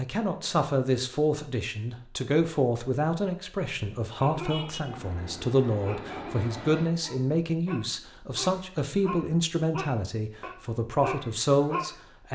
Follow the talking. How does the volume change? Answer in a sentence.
The volume of the talking stays about the same.